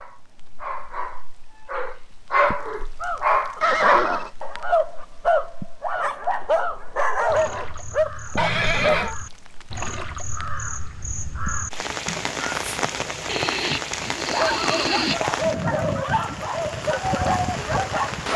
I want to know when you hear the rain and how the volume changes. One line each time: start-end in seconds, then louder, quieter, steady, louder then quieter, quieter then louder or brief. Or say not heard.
0.0-18.3 louder.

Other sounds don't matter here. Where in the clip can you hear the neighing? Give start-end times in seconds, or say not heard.
3.6-4.3, 8.3-9.1, 13.2-15.2.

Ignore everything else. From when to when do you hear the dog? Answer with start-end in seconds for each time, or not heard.
0.0-9.2, 14.2-18.3.